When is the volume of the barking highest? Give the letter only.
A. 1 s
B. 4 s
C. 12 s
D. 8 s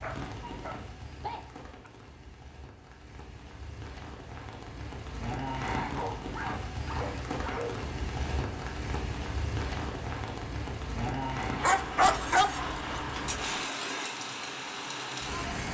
C.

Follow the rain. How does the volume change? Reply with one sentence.
The loudness of the rain goes up.